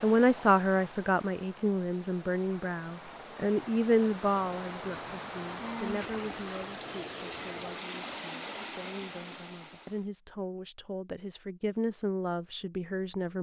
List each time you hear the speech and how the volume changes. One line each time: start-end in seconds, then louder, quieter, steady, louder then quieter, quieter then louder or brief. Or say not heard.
0.0-13.3 quieter then louder.